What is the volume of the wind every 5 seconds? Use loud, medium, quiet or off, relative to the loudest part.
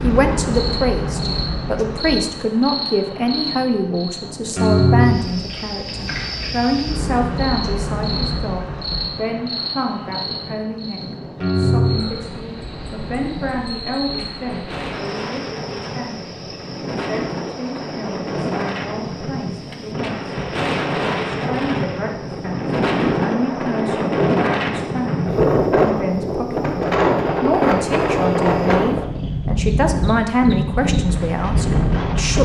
quiet, quiet, quiet, medium, loud, loud, loud.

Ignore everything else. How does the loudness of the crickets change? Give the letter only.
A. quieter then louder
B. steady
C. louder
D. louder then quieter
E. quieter
E.